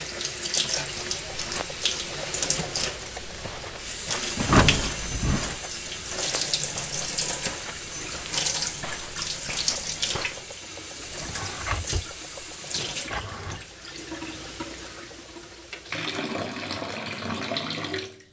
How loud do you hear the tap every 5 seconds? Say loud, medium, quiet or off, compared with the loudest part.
loud, loud, medium, loud.